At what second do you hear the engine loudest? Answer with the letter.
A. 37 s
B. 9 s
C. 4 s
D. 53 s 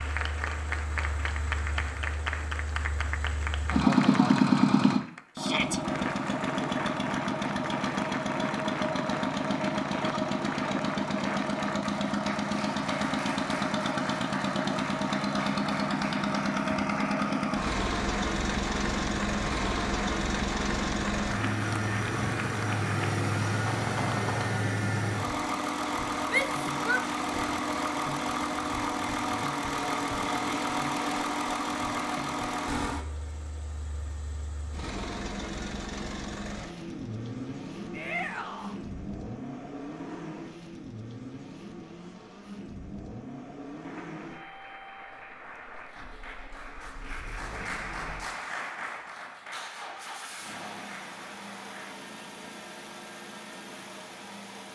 C.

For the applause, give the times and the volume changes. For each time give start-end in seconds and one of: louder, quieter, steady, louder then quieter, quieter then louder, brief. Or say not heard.
0.0-24.6 steady
43.7-52.1 louder then quieter.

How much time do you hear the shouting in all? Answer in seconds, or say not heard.
2 s.